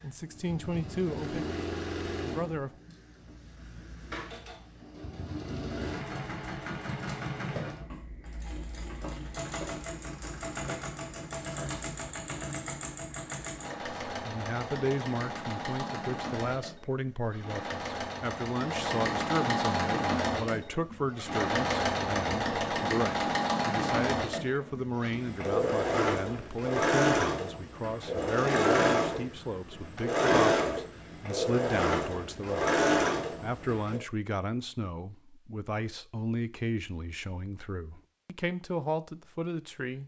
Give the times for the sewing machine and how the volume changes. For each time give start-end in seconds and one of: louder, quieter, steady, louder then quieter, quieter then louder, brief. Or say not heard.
0.0-34.0 louder.